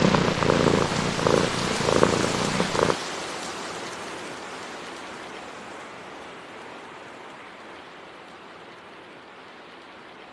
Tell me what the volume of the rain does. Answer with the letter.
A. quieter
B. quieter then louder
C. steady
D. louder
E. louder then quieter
A.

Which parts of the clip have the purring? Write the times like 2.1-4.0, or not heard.
0.0-3.0.